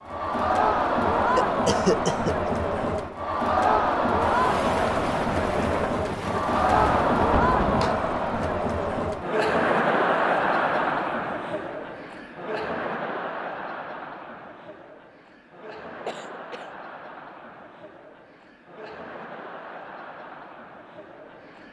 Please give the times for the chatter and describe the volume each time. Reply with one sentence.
You can hear the chatter from 0.0 to 21.6 s, getting quieter.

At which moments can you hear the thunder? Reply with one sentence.
The thunder can be heard from 4.2 to 8.0 s.